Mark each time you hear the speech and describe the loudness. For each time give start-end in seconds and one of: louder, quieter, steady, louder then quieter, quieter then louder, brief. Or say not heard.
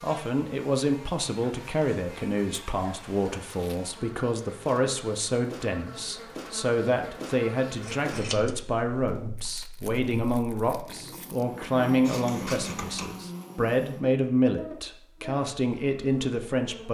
0.0-16.8 steady.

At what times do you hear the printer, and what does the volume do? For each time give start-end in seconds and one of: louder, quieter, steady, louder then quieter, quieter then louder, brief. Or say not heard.
not heard.